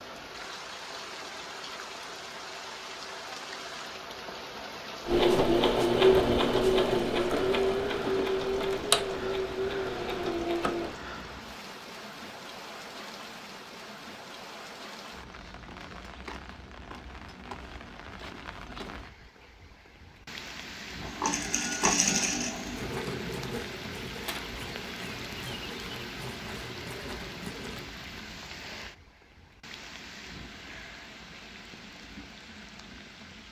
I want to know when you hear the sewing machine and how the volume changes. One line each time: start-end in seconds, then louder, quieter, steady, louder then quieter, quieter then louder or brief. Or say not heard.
5.0-10.9 quieter
21.0-27.9 quieter.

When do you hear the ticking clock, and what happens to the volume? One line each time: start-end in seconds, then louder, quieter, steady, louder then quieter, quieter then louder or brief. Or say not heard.
not heard.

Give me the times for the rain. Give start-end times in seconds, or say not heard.
0.0-33.4.